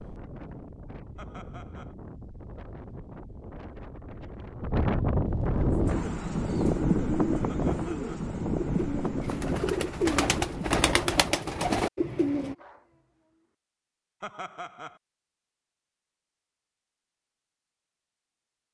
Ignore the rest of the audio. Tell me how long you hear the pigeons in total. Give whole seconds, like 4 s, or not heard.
7 s.